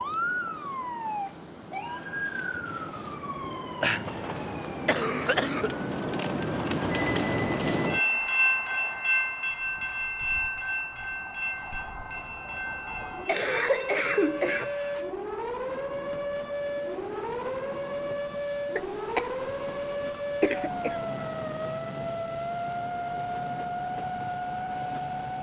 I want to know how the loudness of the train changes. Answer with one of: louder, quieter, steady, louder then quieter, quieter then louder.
louder then quieter.